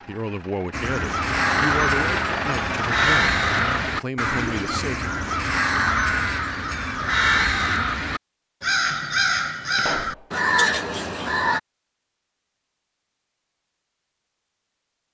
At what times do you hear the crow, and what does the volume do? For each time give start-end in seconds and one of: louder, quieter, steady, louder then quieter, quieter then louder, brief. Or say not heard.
0.7-11.6 steady.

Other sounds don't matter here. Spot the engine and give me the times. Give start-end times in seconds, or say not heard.
0.0-4.0.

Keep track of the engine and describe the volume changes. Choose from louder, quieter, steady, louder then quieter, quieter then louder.
louder.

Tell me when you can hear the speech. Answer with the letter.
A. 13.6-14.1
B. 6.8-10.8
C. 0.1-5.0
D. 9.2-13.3
C.